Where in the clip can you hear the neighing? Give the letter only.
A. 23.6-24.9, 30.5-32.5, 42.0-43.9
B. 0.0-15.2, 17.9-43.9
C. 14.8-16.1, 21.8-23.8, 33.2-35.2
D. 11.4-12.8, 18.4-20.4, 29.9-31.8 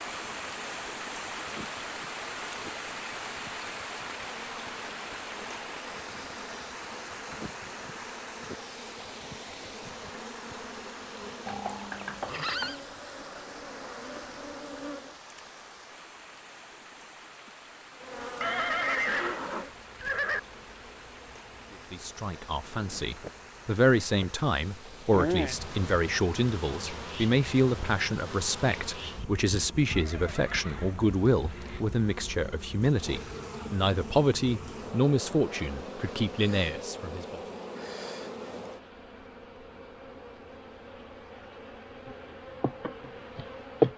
D.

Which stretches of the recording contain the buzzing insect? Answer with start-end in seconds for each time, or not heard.
0.0-15.2, 17.9-43.9.